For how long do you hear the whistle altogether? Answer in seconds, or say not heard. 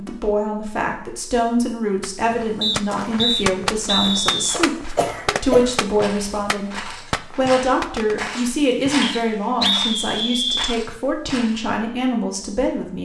4 s.